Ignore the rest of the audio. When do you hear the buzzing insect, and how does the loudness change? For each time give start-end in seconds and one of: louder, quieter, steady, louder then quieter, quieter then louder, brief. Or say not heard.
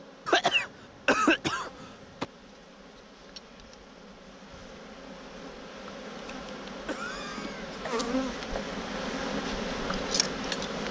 0.0-10.8 louder.